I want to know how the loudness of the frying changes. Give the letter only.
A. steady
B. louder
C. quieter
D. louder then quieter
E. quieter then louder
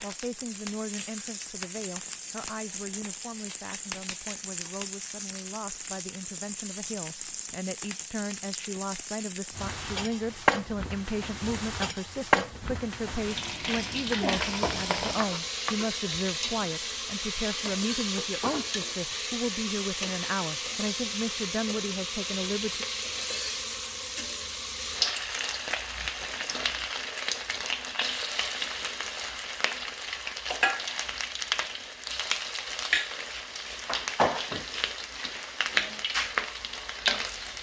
B.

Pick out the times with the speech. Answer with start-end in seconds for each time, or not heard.
0.0-22.9.